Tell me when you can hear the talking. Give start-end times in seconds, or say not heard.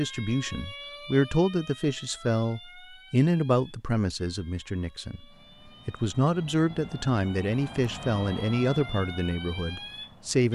0.0-5.2, 5.8-10.4.